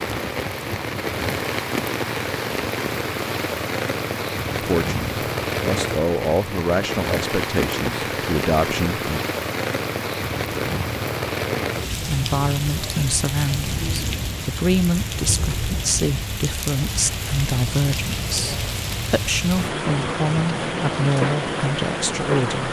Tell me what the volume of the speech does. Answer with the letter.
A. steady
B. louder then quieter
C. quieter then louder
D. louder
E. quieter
A.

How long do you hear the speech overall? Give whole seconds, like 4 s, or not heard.
15 s.